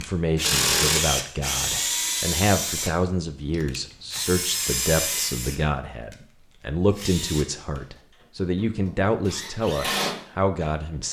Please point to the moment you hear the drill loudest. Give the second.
1 s.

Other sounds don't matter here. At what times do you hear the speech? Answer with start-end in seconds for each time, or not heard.
0.0-11.0.